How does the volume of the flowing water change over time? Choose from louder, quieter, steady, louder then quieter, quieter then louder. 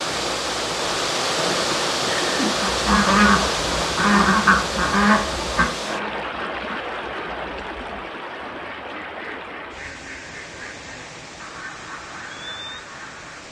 quieter.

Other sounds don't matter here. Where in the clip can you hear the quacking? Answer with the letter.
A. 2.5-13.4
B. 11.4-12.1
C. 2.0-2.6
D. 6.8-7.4
A.